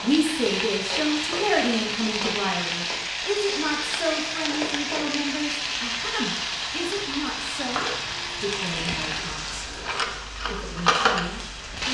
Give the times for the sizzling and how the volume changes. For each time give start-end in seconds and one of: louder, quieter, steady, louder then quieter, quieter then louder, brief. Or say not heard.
0.0-11.8 steady.